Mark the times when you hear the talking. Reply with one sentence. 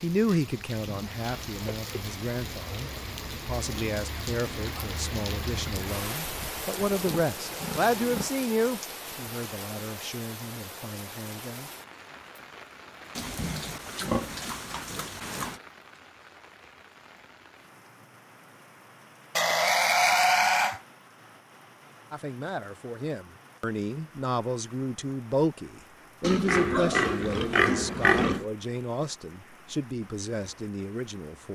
You can hear the talking from 0.0 to 11.7 s and from 22.1 to 31.4 s.